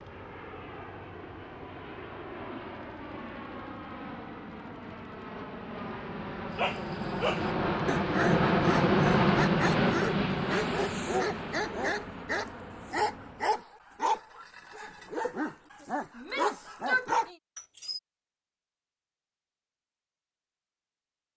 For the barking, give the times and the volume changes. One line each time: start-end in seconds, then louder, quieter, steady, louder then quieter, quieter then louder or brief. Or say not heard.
6.5-18.0 steady.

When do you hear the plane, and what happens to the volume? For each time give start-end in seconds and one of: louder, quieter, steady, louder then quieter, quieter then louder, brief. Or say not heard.
0.0-13.6 louder then quieter.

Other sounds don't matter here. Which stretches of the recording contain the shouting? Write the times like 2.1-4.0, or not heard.
16.1-17.4.